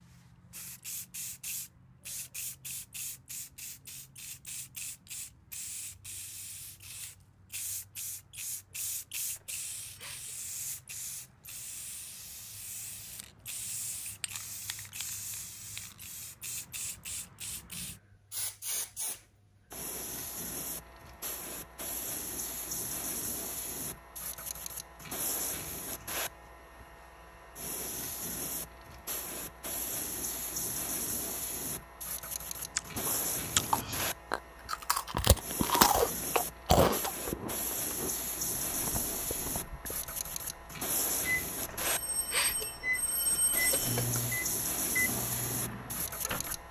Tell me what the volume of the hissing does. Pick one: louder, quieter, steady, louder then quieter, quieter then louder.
louder.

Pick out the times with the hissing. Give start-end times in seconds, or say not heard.
0.0-46.6.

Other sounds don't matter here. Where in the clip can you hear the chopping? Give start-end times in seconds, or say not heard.
not heard.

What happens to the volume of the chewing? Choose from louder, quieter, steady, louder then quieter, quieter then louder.
louder then quieter.